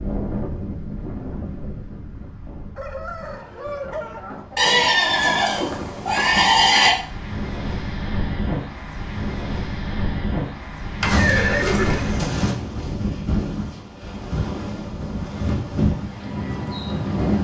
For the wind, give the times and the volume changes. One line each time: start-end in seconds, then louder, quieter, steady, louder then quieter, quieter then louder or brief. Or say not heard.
0.0-17.3 louder.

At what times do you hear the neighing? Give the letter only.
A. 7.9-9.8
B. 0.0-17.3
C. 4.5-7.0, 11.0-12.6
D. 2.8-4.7
C.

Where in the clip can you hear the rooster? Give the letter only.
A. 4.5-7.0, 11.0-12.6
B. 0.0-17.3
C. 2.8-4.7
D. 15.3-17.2
C.